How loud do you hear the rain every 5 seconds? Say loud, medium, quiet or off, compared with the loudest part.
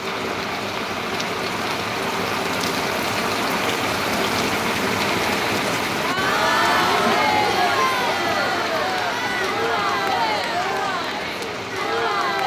loud, loud, medium.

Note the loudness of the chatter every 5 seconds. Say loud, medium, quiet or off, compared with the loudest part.
off, loud, loud.